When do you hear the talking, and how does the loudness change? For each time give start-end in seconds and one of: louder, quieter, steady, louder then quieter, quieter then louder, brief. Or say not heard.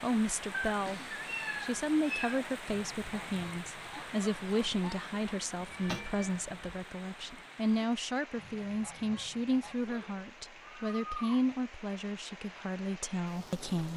0.0-13.9 steady.